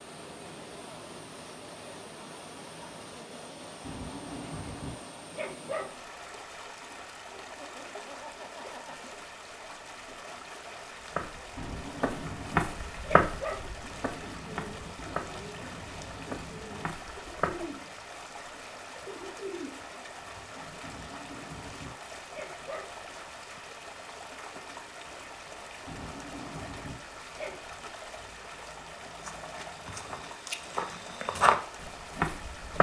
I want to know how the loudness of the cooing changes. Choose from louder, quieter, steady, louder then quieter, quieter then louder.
steady.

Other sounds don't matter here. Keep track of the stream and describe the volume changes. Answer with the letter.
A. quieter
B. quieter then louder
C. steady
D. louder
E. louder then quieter
C.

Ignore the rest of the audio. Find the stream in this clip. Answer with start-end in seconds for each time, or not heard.
0.0-32.7.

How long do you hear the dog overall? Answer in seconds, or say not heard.
8 s.